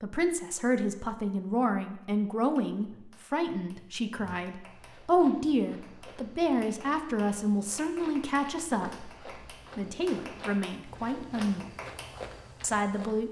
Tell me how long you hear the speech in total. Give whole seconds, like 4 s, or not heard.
12 s.